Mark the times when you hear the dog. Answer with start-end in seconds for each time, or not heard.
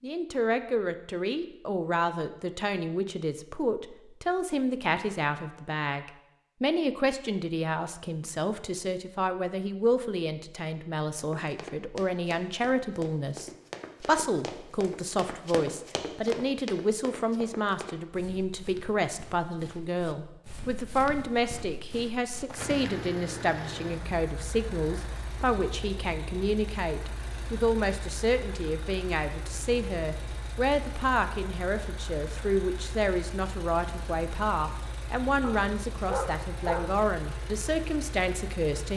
35.4-37.0.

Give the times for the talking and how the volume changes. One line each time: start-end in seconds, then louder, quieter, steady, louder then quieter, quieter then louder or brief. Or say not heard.
0.0-38.9 steady.